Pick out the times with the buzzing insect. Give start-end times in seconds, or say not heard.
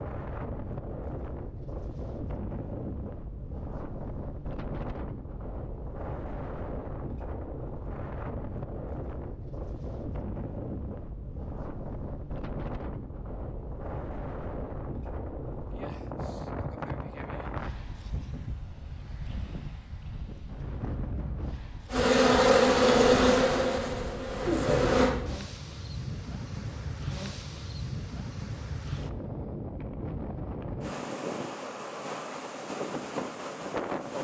21.9-25.1.